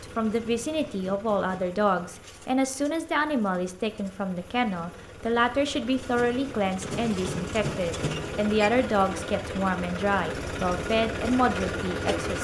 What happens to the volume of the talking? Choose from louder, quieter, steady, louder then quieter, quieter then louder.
steady.